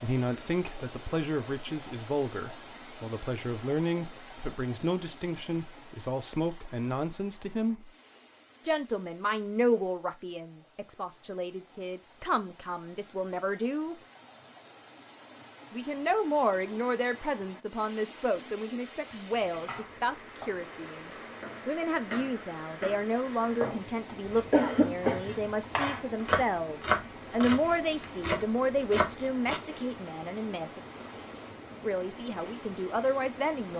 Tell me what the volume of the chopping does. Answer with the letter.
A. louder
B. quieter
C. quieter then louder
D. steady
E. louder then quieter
A.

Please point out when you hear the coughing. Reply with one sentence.
You can hear the coughing from 24.1 to 25.6 s.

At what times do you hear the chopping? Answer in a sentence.
You can hear the chopping from 19.3 to 29.6 s.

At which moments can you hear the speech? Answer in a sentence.
The speech can be heard from 0.0 to 7.9 s, from 8.7 to 13.9 s, from 15.7 to 30.8 s and from 31.8 to 33.7 s.